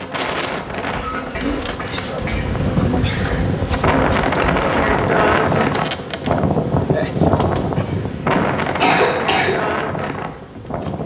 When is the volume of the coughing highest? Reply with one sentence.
The volume of the coughing peaks at 9 seconds.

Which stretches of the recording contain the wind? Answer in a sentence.
The wind can be heard from 0.0 to 11.0 s.